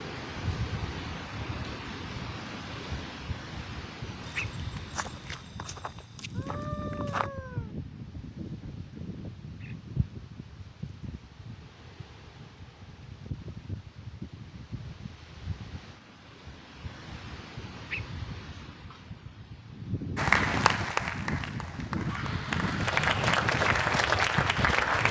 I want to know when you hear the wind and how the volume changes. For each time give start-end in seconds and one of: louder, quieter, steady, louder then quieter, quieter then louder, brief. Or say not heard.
0.0-25.0 quieter then louder.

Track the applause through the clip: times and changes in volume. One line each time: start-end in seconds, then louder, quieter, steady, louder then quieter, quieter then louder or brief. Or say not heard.
20.1-25.0 quieter then louder.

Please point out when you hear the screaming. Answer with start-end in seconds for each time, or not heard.
6.3-7.8, 22.0-22.9.